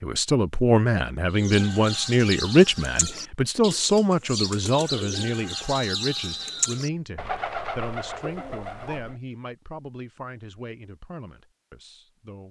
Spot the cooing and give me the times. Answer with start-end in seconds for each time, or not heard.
1.3-9.2.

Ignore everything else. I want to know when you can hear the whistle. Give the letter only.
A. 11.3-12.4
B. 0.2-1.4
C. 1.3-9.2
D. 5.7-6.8
D.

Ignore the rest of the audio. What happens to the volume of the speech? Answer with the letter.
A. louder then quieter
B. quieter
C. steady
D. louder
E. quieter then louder
B.